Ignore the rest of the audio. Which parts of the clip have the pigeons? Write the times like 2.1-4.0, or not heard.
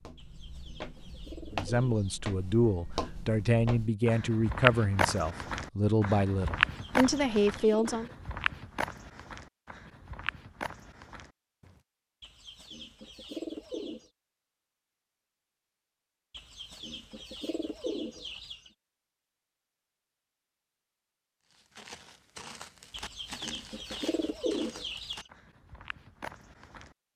0.1-2.2, 6.7-8.1, 12.2-14.1, 16.3-18.7, 22.9-25.3.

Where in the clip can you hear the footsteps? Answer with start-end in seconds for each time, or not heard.
0.0-11.8, 21.5-26.9.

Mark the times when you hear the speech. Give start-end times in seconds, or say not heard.
1.5-8.1.